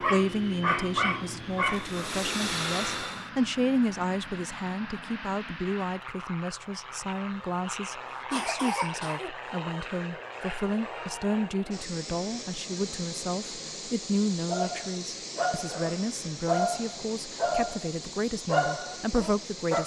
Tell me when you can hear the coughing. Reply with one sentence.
You can hear the coughing from 8.3 to 9.3 s.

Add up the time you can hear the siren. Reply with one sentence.
You can't hear the siren here.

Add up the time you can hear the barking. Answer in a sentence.
The barking can be heard for 9 seconds in total.